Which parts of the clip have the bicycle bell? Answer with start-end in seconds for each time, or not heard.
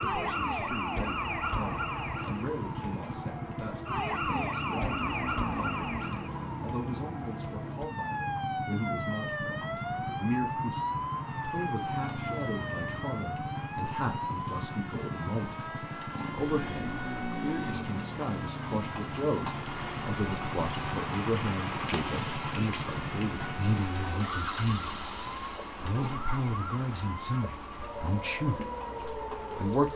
not heard.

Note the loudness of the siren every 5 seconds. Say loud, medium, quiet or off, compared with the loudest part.
loud, loud, loud, medium, medium, medium.